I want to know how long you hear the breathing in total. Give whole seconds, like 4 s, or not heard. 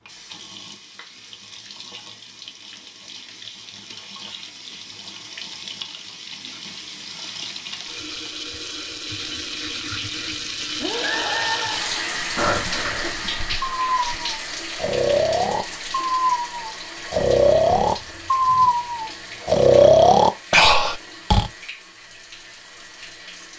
11 s.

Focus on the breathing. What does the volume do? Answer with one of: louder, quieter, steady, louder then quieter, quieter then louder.
louder.